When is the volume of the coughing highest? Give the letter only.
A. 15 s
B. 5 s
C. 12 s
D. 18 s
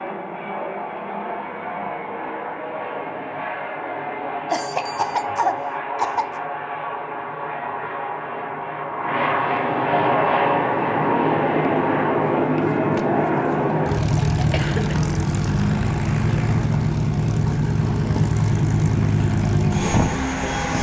B.